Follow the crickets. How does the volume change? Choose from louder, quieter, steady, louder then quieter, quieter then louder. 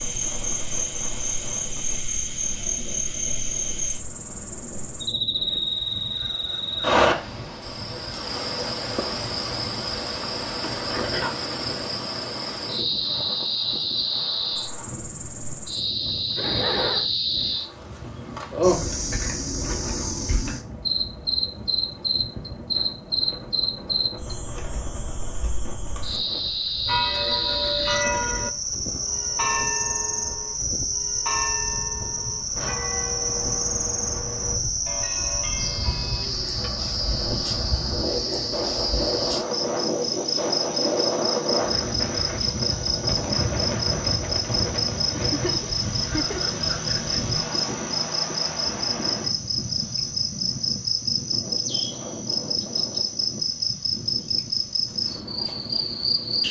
steady.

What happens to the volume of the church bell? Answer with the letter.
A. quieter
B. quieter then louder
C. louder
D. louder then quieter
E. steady
A.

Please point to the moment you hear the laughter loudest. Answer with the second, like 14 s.
17 s.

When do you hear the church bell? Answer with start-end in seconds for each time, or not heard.
26.9-36.7.